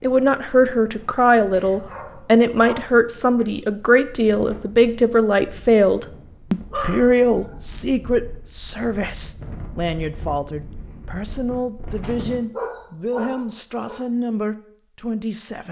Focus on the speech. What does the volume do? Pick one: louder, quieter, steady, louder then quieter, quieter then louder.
quieter.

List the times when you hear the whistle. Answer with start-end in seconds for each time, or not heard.
not heard.